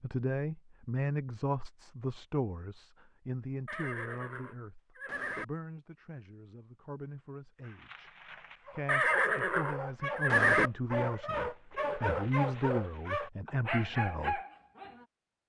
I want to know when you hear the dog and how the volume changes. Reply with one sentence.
The dog can be heard from 7.6 to 15.1 s, getting louder.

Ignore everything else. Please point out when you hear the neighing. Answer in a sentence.
You can hear the neighing from 3.6 to 5.5 s and from 8.8 to 10.7 s.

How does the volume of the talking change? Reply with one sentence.
The loudness of the talking goes down, then up.